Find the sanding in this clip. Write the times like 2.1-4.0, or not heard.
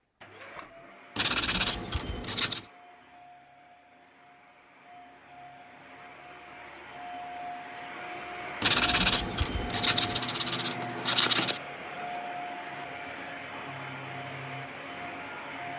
1.1-2.7, 8.6-11.6.